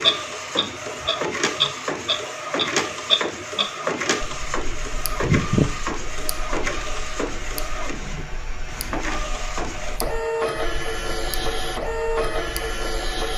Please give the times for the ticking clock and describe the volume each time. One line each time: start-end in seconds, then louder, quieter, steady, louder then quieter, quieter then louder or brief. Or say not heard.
0.0-13.2 quieter.